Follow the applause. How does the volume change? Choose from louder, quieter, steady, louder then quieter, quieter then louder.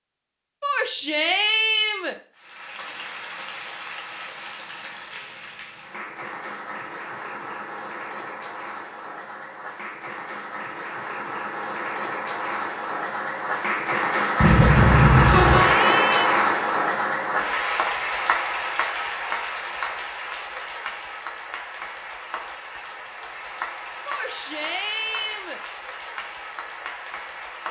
louder then quieter.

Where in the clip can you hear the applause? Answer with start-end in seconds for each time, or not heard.
2.4-27.6.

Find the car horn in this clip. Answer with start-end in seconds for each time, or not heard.
14.4-15.8.